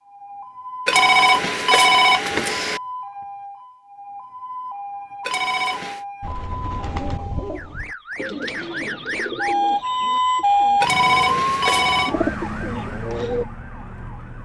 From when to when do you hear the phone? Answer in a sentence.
You can hear the phone from 0.8 to 2.8 s, from 5.2 to 6.0 s and from 10.8 to 12.2 s.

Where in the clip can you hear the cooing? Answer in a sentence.
The cooing can be heard from 6.2 to 13.4 s.